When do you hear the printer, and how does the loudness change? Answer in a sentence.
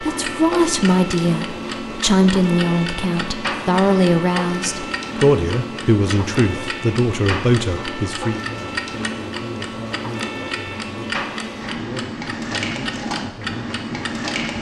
You can hear the printer from 0.0 to 14.5 s, at a steady volume.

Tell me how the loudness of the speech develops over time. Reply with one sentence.
The volume of the speech goes down.